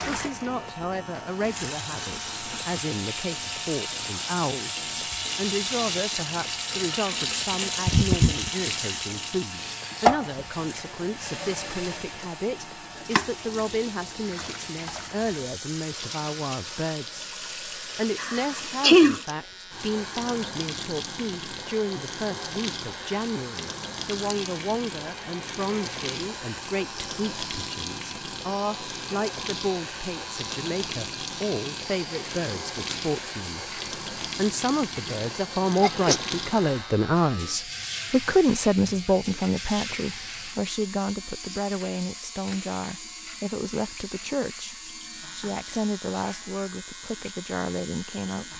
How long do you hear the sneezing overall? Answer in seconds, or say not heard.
2 s.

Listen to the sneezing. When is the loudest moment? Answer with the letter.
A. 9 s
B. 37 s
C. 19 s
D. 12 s
C.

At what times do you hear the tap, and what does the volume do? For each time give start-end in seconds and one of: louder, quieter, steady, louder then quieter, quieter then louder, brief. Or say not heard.
0.0-48.5 quieter.